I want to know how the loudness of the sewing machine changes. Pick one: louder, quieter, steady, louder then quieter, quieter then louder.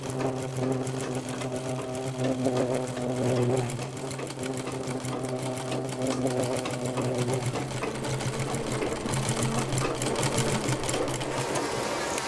louder.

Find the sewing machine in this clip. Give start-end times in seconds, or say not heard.
0.0-12.2.